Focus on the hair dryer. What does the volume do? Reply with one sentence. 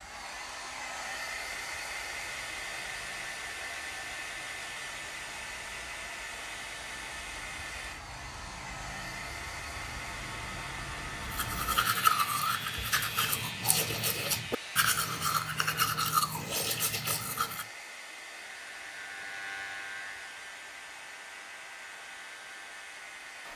The loudness of the hair dryer goes down.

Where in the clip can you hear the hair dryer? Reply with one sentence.
You can hear the hair dryer from 0.0 to 23.5 s.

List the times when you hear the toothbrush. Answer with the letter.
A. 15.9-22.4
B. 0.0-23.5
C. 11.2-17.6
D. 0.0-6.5
C.